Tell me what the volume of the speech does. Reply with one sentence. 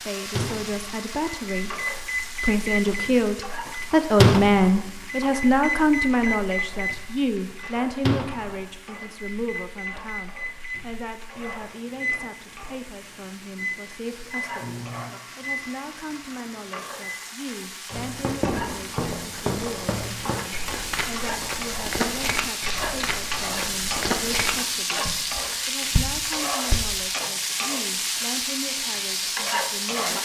The loudness of the speech goes down.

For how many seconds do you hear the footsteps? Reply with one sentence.
You can hear the footsteps for 9 seconds altogether.